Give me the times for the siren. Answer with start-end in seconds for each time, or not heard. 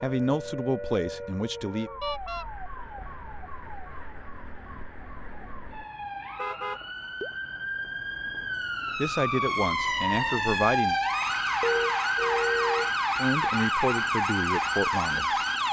0.0-15.6.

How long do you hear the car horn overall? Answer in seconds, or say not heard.
3 s.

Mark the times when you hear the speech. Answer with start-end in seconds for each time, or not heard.
0.0-1.9, 8.9-11.0, 13.2-15.2.